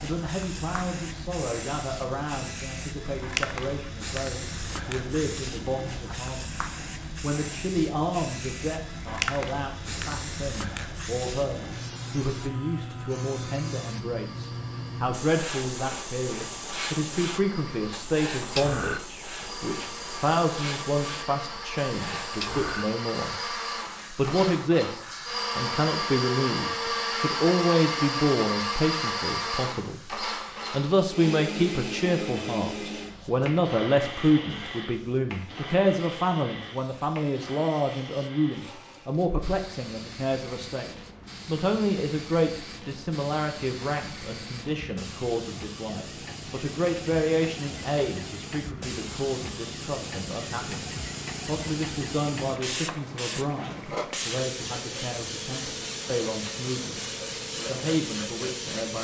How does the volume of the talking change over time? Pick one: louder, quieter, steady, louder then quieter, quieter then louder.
louder then quieter.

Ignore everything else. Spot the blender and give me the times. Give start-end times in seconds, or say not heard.
0.0-39.2.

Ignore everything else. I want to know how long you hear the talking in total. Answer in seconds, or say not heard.
58 s.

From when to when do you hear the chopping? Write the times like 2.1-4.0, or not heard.
not heard.